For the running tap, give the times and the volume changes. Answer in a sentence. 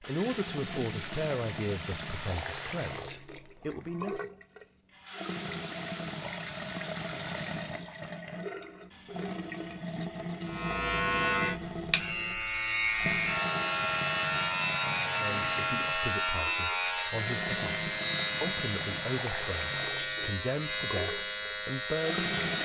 You can hear the running tap from 0.0 to 22.5 s, at a steady volume.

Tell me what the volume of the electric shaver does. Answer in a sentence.
The loudness of the electric shaver stays about the same.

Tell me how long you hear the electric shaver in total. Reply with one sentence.
The electric shaver can be heard for 12 seconds in total.